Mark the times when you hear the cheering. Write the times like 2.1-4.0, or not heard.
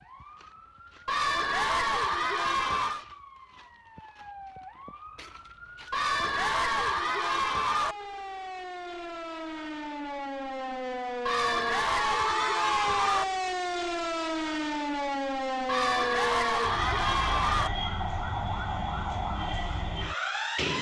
1.1-3.0, 5.9-8.0, 11.2-13.2, 15.7-17.7.